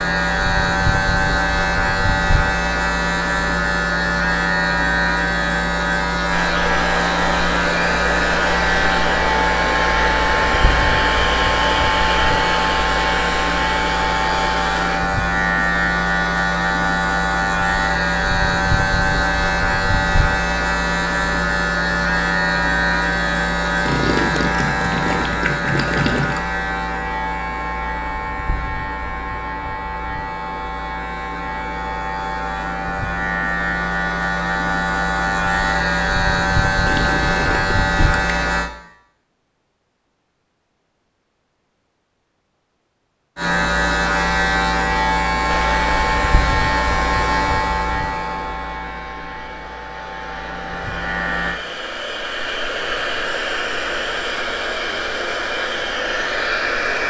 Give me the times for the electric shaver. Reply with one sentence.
You can hear the electric shaver from 0.0 to 38.7 s and from 43.4 to 51.6 s.